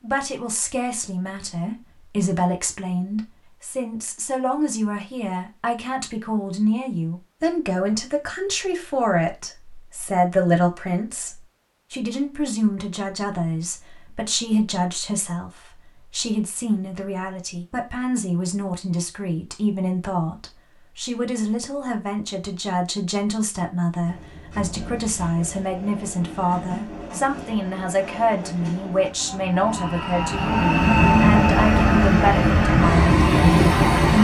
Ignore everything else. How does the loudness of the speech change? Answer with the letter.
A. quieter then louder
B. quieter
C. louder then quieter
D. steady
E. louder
D.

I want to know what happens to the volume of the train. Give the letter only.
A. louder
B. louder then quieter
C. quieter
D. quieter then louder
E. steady
A.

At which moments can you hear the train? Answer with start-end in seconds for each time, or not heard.
24.1-34.1.